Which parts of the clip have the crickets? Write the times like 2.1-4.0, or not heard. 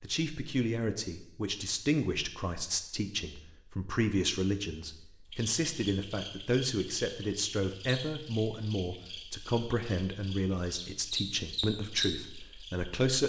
5.3-13.1.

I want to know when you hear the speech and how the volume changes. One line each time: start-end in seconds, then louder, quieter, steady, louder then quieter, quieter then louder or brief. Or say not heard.
0.0-13.2 steady.